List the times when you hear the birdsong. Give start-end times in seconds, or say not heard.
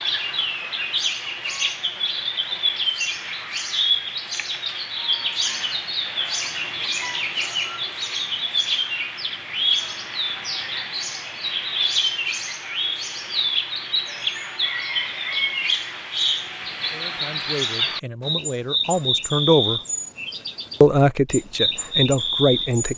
0.0-22.9.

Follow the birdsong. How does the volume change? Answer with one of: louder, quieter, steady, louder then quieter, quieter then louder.
steady.